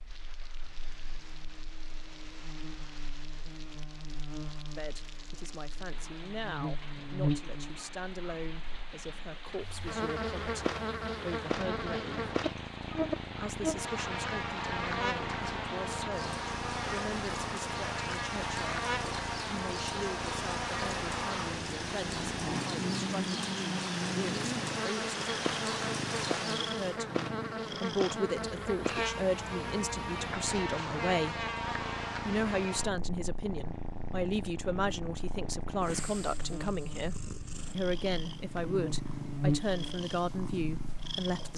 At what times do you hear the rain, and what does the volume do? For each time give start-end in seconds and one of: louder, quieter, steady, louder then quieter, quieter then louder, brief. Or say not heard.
0.0-26.9 louder.